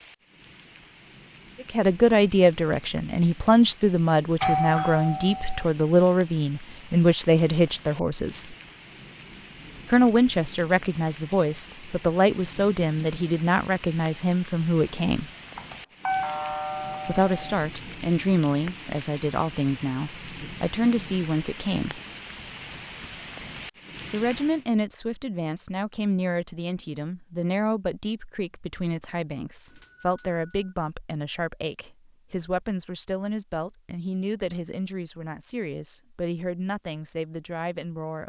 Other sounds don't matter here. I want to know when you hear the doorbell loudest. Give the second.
5 s.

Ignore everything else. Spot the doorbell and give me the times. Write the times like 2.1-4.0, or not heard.
4.4-5.7, 15.6-17.6, 29.6-30.6.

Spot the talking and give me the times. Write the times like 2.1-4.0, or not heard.
1.6-8.6, 9.9-15.3, 17.1-22.0, 24.1-38.2.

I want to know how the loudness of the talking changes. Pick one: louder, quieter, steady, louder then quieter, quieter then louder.
quieter.